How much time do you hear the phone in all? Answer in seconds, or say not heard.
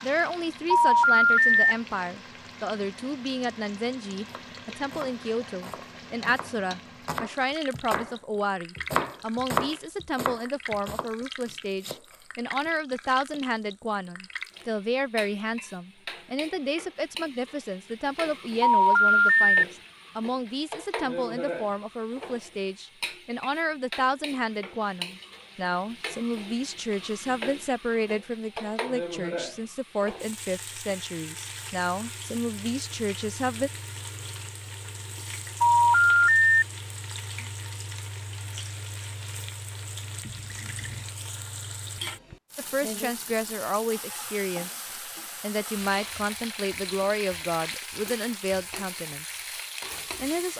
3 s.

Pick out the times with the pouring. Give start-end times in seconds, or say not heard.
40.2-41.1.